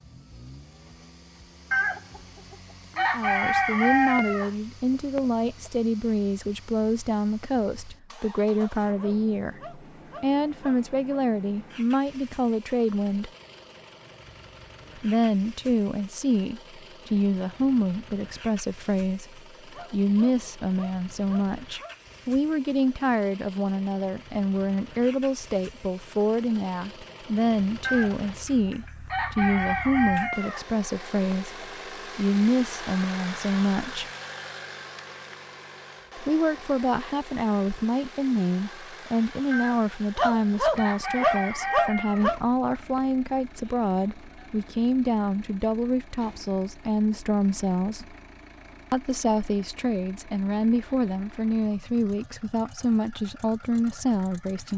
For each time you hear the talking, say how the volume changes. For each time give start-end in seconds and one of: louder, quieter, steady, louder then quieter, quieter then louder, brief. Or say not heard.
3.0-13.3 steady
14.9-34.0 steady
36.1-48.1 steady
48.9-54.7 steady.